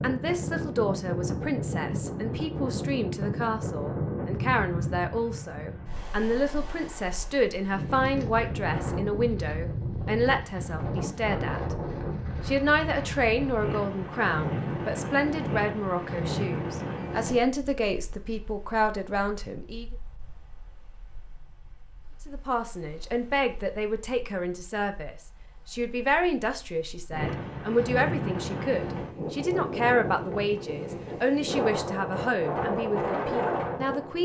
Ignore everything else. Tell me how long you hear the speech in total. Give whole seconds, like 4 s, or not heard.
31 s.